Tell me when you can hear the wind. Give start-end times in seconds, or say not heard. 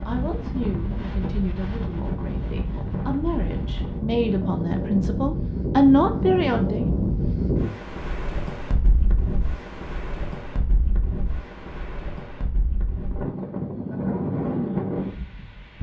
0.0-15.7.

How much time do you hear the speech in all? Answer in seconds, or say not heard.
7 s.